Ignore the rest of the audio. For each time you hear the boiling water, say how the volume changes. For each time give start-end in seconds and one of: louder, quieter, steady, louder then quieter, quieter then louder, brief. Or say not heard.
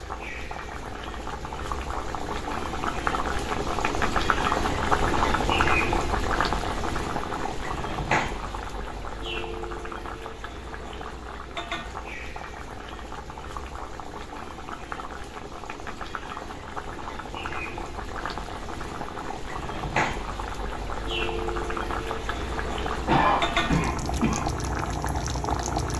0.0-25.9 quieter then louder.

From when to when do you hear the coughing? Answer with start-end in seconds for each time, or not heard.
23.1-24.6.